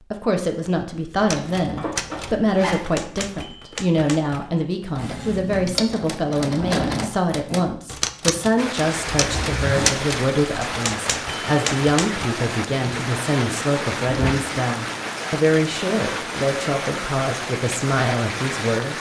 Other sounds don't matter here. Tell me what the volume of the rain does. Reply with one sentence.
The loudness of the rain stays about the same.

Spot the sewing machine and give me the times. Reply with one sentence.
You can hear the sewing machine from 5.0 to 7.1 s.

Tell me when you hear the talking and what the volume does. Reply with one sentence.
You can hear the talking from 0.1 to 18.9 s, at a steady volume.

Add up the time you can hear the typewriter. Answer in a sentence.
You can hear the typewriter for 11 seconds altogether.